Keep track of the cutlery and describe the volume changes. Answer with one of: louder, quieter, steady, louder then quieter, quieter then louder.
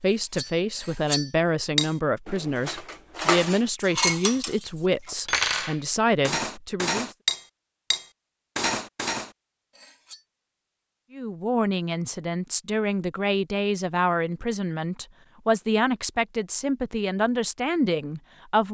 steady.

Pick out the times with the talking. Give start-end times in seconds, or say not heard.
0.0-7.1, 11.1-18.6.